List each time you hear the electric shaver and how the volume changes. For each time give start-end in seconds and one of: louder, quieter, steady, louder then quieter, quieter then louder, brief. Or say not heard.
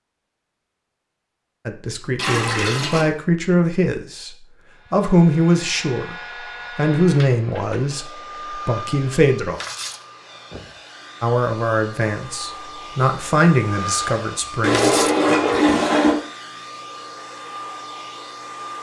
not heard.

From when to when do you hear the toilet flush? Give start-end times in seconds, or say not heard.
2.1-3.0, 14.6-16.1.